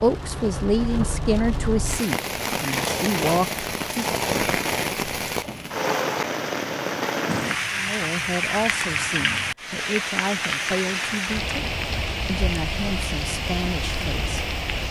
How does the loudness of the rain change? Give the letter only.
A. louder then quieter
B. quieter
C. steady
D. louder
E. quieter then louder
C.